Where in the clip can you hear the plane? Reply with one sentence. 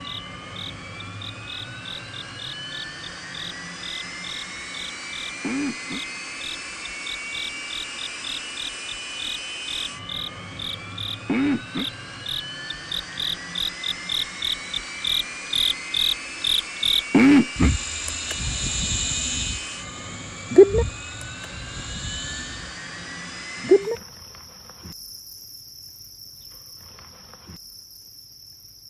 The plane can be heard from 0.0 to 24.0 s.